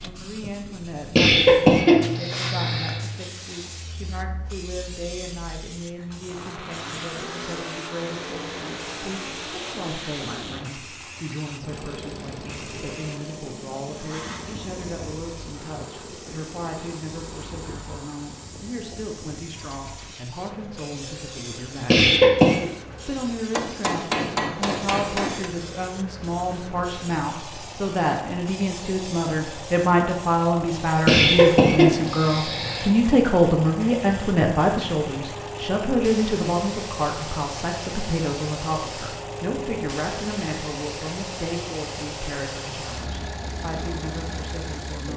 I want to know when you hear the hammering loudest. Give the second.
24 s.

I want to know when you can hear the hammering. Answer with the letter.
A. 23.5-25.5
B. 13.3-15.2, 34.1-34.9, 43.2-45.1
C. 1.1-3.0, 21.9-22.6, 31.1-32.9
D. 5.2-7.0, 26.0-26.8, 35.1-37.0
A.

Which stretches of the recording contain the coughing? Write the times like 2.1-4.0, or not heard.
1.1-3.0, 21.9-22.6, 31.1-32.9.